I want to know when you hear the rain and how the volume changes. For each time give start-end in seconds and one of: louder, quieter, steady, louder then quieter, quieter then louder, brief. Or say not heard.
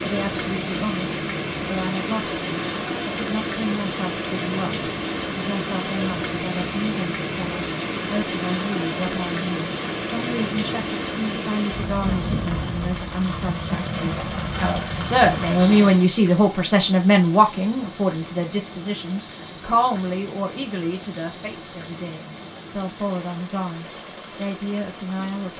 0.0-25.5 quieter.